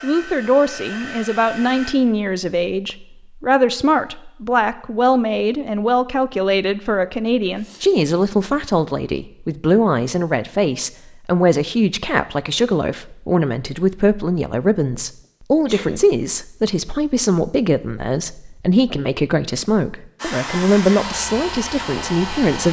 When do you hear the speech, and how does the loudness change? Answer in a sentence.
The speech can be heard from 0.0 to 22.6 s, at a steady volume.